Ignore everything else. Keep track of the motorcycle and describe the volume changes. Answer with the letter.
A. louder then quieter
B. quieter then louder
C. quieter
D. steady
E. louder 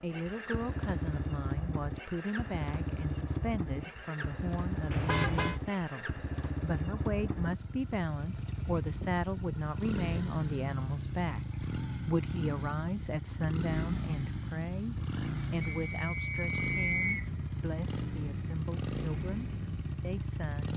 D.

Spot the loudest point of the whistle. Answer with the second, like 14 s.
17 s.